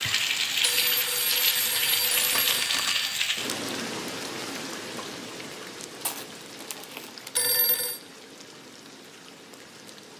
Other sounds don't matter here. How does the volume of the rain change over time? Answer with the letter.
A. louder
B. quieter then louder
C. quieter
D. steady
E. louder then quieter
C.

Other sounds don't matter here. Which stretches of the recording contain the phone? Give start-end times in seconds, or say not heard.
0.6-3.0, 7.3-8.0.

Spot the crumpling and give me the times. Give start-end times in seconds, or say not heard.
2.1-3.1, 6.0-7.4.